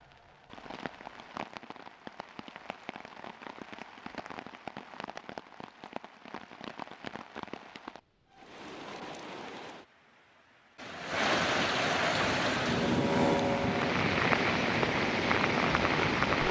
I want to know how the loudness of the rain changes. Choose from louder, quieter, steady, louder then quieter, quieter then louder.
louder.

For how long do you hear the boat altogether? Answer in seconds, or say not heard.
4 s.